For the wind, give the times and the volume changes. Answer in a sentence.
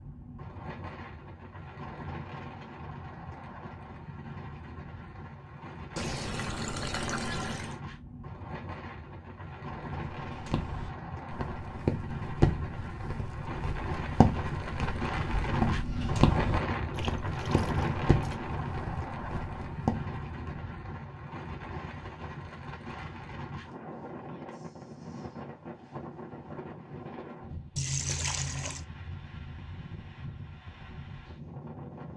You can hear the wind from 0.0 to 32.1 s, getting louder then quieter.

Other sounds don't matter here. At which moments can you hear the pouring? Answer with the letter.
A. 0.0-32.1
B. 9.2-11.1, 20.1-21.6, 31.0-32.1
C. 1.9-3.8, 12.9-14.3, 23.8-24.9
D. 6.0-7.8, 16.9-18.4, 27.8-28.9
D.